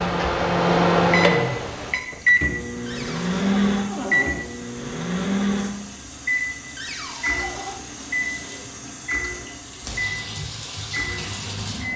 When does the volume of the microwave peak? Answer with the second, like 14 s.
1 s.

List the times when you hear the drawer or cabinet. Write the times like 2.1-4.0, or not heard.
2.9-4.3, 6.8-7.8.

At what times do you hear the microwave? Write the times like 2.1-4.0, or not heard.
0.0-11.9.